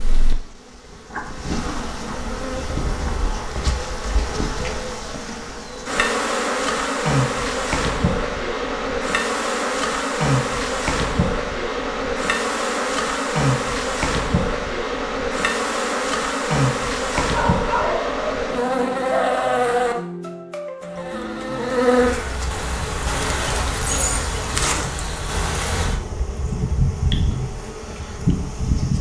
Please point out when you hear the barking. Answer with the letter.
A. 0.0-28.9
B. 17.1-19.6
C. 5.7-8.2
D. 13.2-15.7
B.